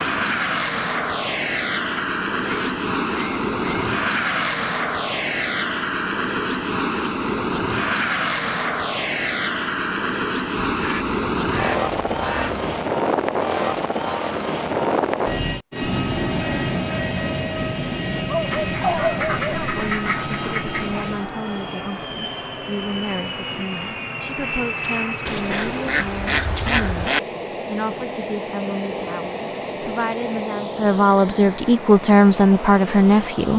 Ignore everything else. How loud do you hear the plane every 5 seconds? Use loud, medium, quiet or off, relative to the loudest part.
loud, loud, loud, loud, medium, medium, medium.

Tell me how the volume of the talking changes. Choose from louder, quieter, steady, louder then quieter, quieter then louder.
louder.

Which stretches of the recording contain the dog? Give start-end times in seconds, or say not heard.
18.2-19.9.